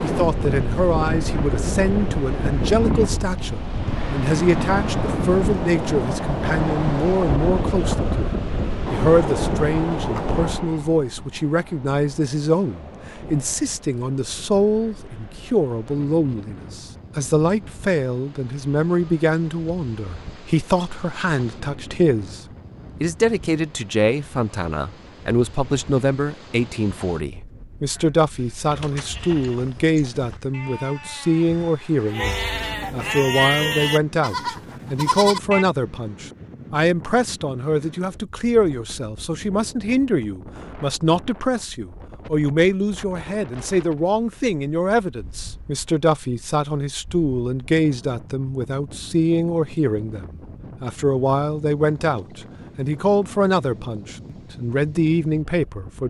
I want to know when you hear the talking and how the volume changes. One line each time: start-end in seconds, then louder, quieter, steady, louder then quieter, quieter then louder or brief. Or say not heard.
0.0-22.4 steady
23.0-56.0 steady.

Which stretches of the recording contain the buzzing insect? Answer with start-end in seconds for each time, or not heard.
not heard.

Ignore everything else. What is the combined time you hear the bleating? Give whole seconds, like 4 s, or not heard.
8 s.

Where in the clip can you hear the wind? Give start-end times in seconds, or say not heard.
0.0-56.0.